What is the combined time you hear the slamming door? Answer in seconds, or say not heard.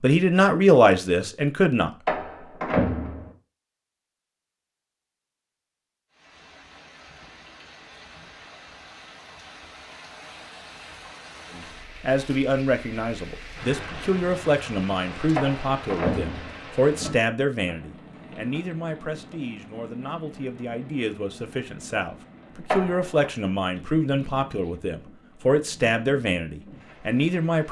3 s.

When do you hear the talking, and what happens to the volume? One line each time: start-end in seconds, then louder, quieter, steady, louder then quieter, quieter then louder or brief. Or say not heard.
0.0-1.9 brief
11.6-27.6 quieter then louder.